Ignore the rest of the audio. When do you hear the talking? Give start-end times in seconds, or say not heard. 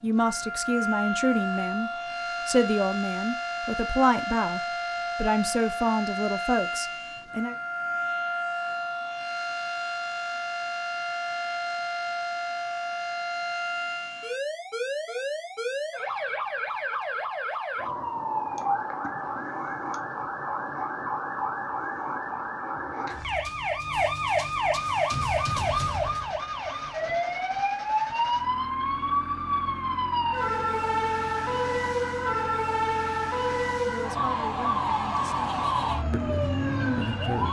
0.0-7.5, 33.9-37.4.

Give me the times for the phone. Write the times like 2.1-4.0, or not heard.
not heard.